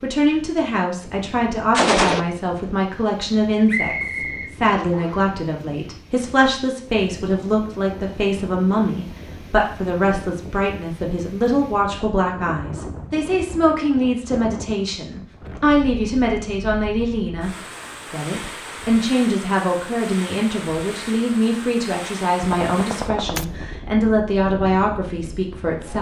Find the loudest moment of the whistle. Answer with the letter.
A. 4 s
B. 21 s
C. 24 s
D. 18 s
A.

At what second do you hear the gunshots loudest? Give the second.
2 s.